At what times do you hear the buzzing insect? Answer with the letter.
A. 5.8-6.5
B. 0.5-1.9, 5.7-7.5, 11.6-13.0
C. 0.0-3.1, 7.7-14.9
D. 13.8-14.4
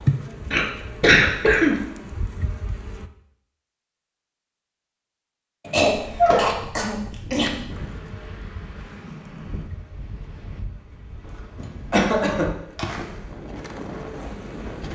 C.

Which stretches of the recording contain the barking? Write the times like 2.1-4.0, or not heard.
5.8-6.5.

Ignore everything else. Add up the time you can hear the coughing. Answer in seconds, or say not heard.
5 s.